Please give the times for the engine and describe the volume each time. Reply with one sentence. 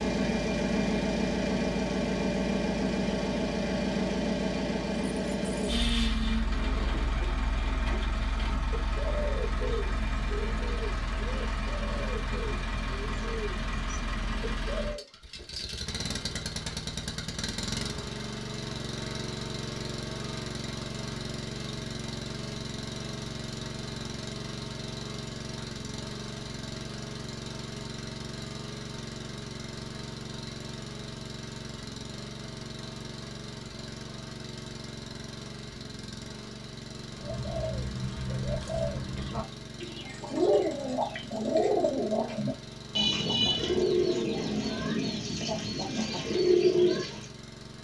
The engine can be heard from 0.0 to 47.7 s, getting quieter.